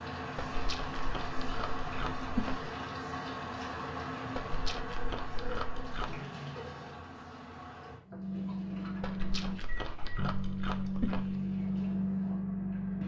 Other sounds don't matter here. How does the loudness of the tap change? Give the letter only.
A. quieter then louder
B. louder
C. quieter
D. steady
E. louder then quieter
C.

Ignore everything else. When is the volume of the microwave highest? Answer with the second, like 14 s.
12 s.